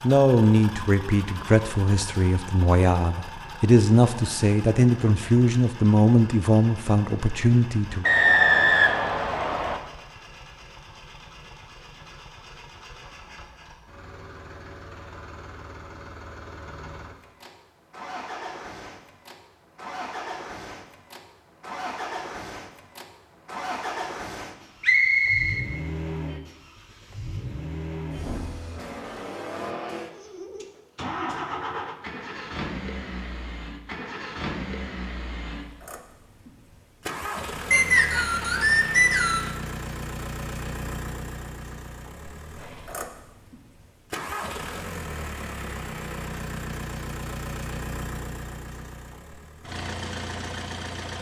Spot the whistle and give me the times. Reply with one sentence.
The whistle can be heard from 8.0 to 9.8 s, from 24.8 to 25.6 s and from 37.7 to 39.5 s.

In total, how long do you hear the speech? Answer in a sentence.
You can hear the speech for 8 seconds altogether.